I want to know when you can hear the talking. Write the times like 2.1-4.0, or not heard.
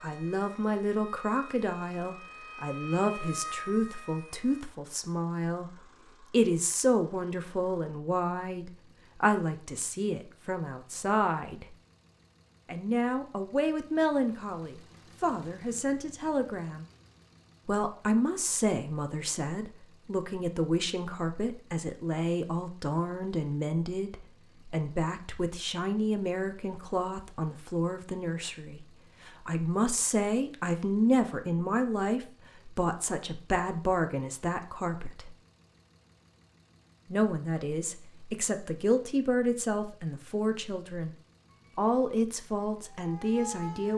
0.0-11.8, 12.7-16.9, 17.6-35.4, 37.1-41.1, 41.8-43.9.